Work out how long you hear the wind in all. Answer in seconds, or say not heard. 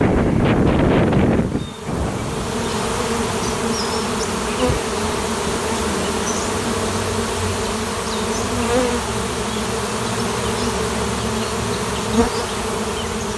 7 s.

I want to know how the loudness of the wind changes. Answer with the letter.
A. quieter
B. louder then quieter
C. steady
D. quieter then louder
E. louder
A.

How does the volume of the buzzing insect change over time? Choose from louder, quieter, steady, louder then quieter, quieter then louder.
louder.